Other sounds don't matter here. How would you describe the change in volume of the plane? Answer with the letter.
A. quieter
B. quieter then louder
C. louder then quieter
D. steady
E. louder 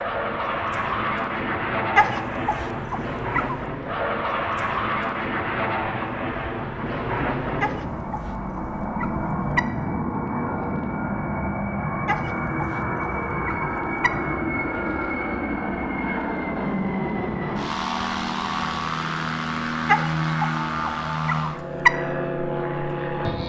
D.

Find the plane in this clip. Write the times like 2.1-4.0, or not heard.
0.0-23.4.